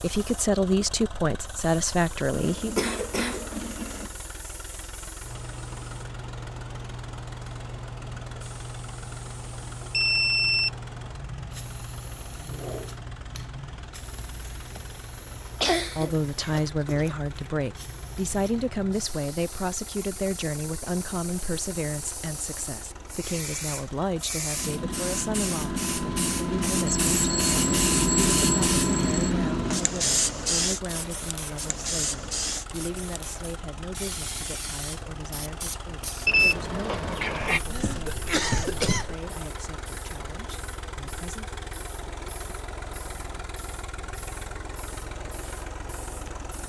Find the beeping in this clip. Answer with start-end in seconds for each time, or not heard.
9.9-10.7, 26.9-29.4, 36.2-37.6.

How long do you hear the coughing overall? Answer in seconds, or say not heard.
5 s.